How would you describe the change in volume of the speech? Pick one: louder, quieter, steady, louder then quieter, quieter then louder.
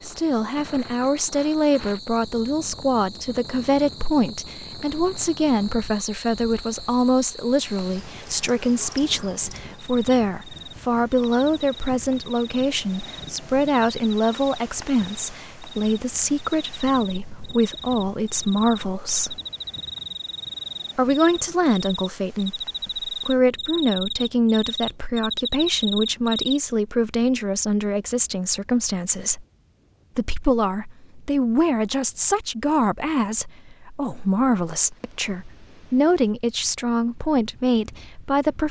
steady.